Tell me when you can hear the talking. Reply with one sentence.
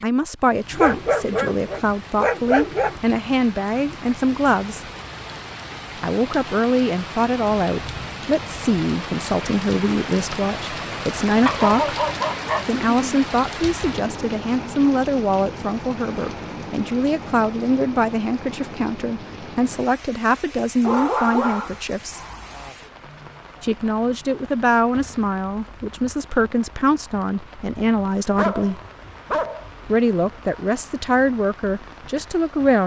You can hear the talking from 0.0 to 4.8 s, from 6.0 to 11.9 s, from 12.7 to 22.2 s, from 23.6 to 28.8 s and from 29.9 to 32.8 s.